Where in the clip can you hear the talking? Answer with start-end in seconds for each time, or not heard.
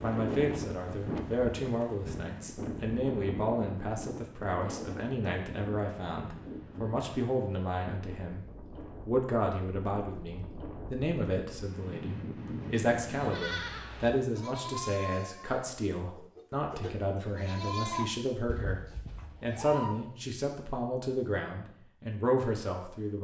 0.0-23.1.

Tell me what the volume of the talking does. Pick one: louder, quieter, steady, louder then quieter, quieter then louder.
steady.